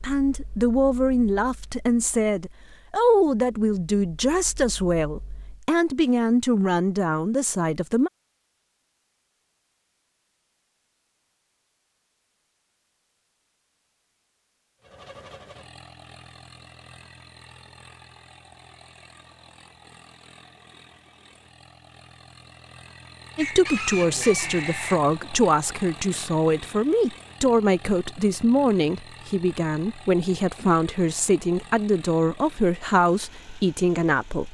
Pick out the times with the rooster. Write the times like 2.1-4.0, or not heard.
23.4-25.0.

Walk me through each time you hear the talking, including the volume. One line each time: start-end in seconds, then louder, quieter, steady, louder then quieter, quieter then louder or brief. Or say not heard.
0.0-8.1 steady
23.4-34.4 steady.